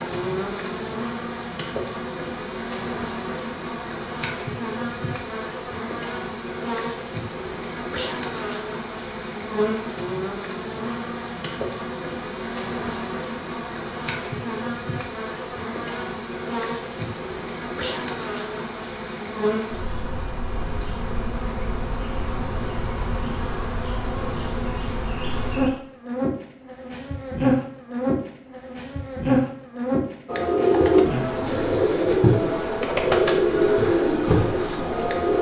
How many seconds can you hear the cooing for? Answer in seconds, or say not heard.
5 s.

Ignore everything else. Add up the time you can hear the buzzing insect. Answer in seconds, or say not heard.
35 s.